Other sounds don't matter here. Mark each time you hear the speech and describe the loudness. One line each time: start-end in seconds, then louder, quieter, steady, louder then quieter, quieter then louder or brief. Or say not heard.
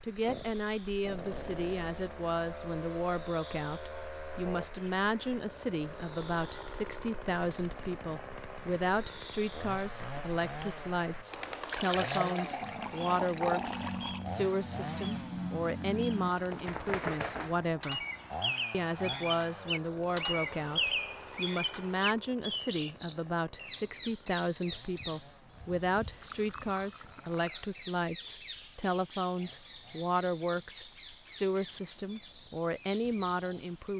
0.0-18.1 steady
18.7-33.9 steady.